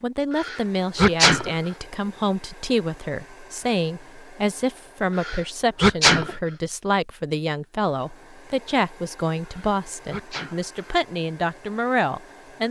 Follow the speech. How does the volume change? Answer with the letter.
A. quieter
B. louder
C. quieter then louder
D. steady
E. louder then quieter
D.